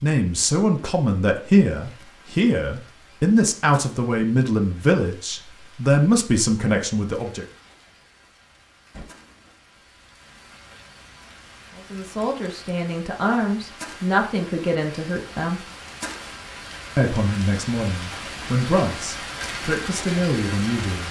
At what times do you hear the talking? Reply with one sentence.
You can hear the talking from 0.0 to 7.5 s, from 11.8 to 15.6 s and from 16.9 to 21.0 s.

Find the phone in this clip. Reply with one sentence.
The phone can't be heard in this clip.